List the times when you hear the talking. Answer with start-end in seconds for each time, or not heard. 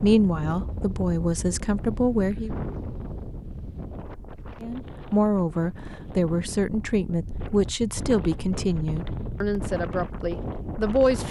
0.0-2.5, 4.6-11.2.